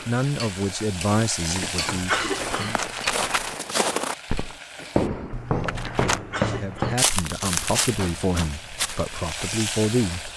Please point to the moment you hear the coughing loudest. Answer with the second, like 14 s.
2 s.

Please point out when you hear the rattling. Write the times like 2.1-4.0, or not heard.
2.2-3.5, 5.3-6.2.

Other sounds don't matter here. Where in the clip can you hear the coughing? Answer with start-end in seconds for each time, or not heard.
1.6-2.9, 5.8-7.0.